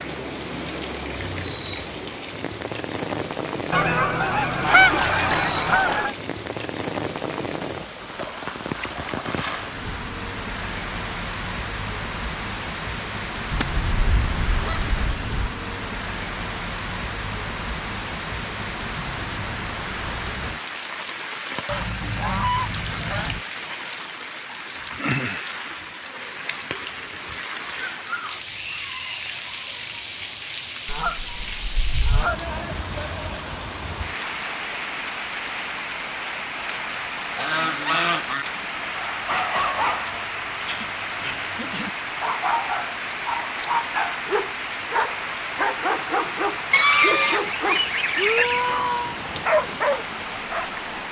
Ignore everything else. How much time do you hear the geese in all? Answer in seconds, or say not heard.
11 s.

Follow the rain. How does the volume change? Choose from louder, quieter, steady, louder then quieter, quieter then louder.
steady.